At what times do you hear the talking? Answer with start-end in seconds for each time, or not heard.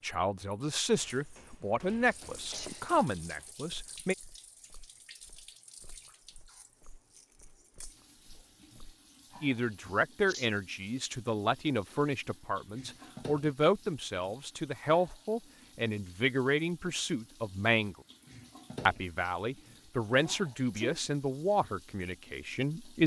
0.0-4.2, 9.4-17.9, 18.9-23.0.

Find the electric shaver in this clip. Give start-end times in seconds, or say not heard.
not heard.